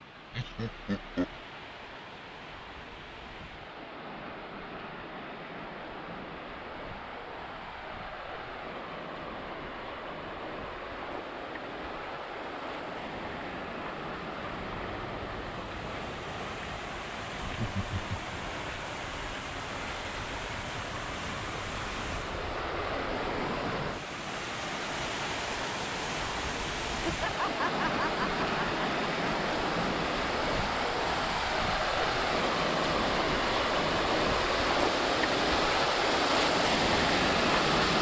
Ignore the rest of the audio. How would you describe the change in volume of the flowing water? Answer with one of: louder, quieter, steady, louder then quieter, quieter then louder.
louder.